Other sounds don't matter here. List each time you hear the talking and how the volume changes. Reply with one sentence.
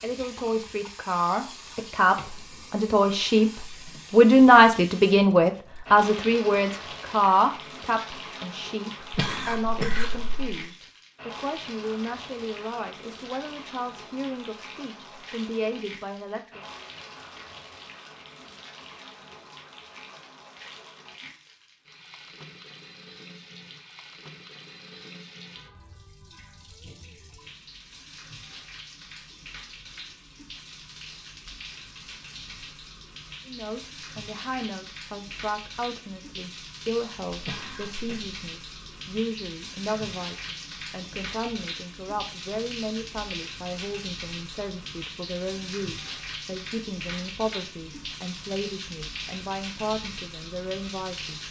The talking can be heard from 0.0 to 16.6 s, getting louder then quieter; and from 33.5 to 51.4 s, at a steady volume.